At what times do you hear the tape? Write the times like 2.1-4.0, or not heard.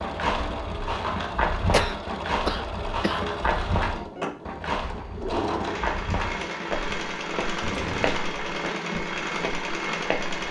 not heard.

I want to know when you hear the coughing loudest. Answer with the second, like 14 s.
2 s.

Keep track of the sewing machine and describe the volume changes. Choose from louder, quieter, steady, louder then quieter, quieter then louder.
louder.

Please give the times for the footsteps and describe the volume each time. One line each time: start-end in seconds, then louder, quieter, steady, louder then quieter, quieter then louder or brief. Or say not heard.
0.0-10.4 quieter.